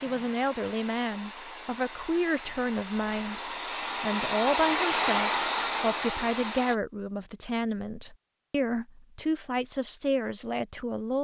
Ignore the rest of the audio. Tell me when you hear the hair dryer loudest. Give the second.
5 s.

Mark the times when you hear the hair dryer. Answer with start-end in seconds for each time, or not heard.
0.0-6.8.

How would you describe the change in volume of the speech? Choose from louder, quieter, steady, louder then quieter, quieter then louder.
steady.